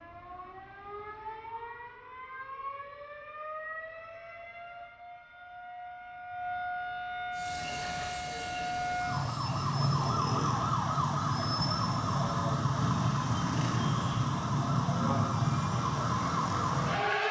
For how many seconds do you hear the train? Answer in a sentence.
The train can be heard for 3 seconds in total.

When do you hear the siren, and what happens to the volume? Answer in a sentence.
You can hear the siren from 0.0 to 17.2 s, getting louder.